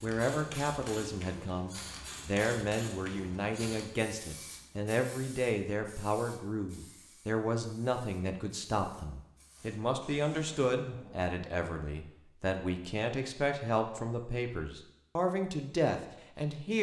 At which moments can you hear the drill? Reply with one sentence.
You can't hear the drill here.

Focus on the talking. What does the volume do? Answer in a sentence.
The volume of the talking stays about the same.